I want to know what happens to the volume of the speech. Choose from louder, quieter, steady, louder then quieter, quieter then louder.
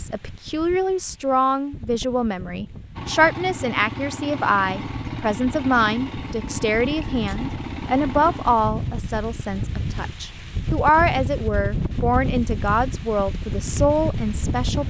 steady.